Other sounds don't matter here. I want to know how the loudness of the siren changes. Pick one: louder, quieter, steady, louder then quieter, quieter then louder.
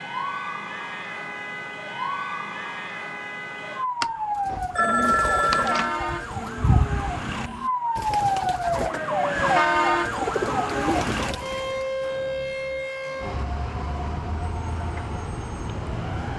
louder then quieter.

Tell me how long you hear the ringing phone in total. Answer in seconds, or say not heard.
2 s.